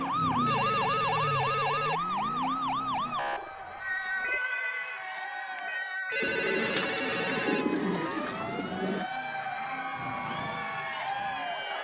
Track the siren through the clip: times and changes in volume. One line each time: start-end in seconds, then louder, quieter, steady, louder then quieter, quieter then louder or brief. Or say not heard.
0.0-11.7 quieter.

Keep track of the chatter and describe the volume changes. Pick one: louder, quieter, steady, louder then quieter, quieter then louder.
louder.